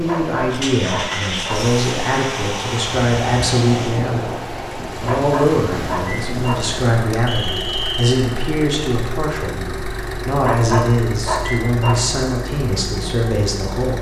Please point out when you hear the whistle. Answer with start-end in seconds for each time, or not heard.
7.2-8.2.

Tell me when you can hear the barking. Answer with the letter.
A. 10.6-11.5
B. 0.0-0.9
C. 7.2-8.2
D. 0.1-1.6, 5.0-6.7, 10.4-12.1
D.